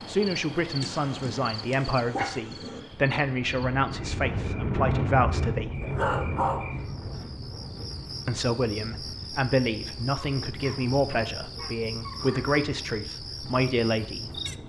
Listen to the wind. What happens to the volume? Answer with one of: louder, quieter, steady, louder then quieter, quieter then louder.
quieter.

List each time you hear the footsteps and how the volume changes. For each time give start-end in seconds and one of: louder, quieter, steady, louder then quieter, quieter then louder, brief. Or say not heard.
not heard.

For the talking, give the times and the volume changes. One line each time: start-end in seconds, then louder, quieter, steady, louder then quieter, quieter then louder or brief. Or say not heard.
0.1-5.8 steady
8.2-14.6 steady.